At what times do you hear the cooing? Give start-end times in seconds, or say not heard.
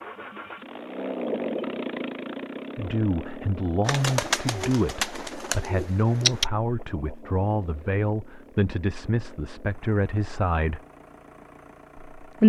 3.9-6.5.